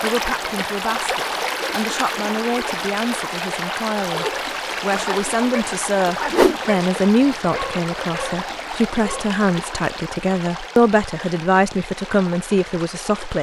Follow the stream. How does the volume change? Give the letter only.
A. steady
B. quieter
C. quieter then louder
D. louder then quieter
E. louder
B.